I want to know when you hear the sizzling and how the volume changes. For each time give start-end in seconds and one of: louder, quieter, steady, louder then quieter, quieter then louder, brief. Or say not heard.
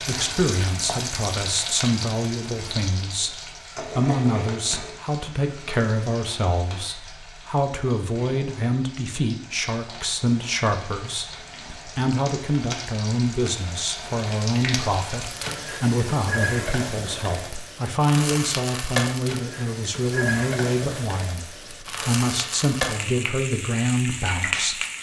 0.0-24.9 quieter then louder.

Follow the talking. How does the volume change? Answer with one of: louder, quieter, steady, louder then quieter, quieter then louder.
steady.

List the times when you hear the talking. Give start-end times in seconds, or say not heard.
0.1-3.3, 4.0-24.8.